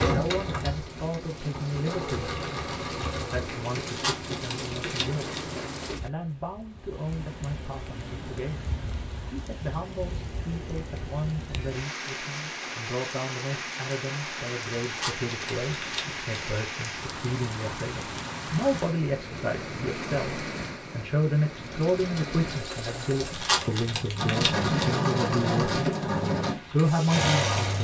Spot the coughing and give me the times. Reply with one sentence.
The coughing can't be heard in this clip.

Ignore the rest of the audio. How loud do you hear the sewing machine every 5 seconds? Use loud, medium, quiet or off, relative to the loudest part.
medium, off, off, off, medium, loud.